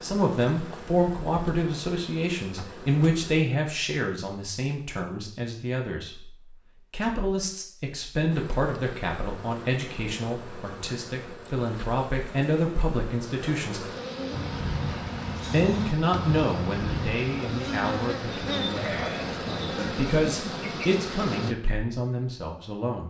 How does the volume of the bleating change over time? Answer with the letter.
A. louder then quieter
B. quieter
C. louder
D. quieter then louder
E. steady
E.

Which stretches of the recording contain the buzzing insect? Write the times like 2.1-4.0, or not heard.
0.0-3.5, 8.3-21.6.